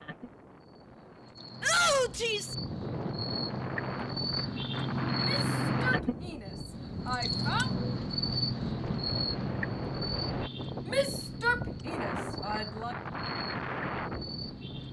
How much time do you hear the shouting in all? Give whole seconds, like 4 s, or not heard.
6 s.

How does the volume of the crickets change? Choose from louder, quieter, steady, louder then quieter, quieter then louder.
louder then quieter.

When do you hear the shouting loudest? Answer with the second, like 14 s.
2 s.